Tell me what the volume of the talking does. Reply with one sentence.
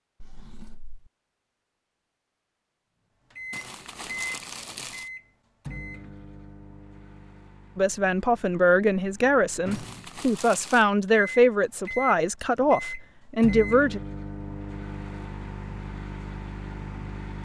The volume of the talking stays about the same.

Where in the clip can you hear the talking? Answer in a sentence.
You can hear the talking from 7.8 to 14.0 s.